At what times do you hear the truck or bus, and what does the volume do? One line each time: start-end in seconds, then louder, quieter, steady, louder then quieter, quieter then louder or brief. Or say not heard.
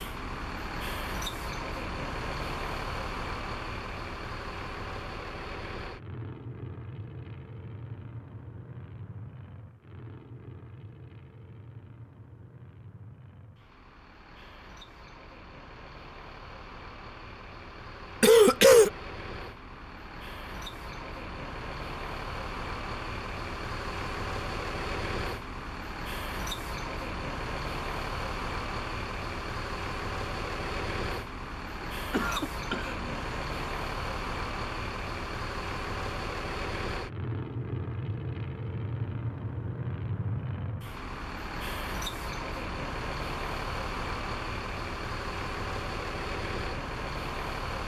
0.0-47.8 quieter then louder.